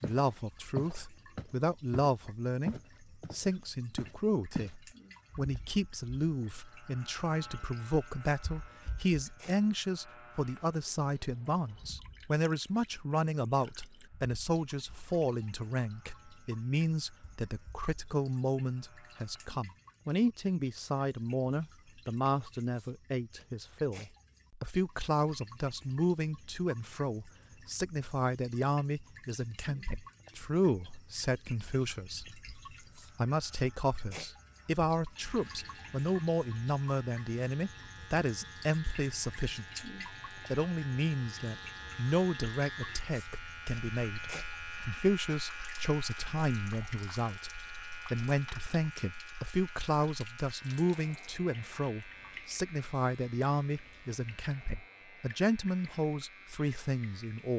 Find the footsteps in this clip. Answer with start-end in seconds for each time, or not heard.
0.0-4.8.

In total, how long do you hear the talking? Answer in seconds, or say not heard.
57 s.